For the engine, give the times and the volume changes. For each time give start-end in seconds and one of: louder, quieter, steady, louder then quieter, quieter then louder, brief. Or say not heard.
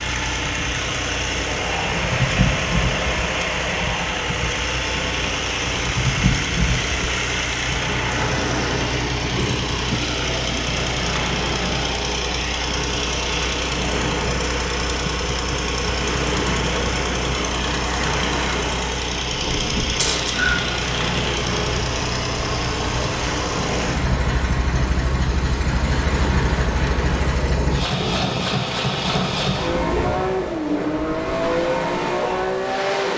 0.0-33.1 steady.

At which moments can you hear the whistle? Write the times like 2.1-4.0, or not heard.
19.9-20.6.